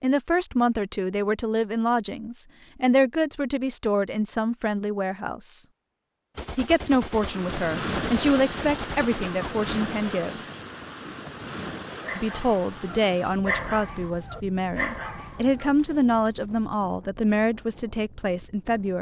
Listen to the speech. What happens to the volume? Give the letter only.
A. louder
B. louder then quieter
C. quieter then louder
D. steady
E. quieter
D.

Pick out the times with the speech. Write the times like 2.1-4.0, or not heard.
0.0-5.7, 6.5-10.4, 12.2-18.9.